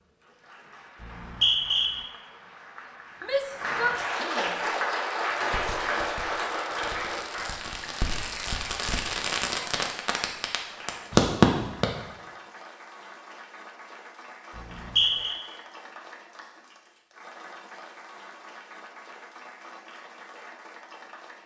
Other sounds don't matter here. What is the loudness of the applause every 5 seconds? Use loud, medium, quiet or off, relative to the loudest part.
loud, loud, quiet, quiet, quiet.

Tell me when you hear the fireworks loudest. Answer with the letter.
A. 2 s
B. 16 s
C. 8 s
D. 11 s
D.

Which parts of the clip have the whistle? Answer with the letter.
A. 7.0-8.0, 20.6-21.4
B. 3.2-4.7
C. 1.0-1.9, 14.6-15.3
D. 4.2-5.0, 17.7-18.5
C.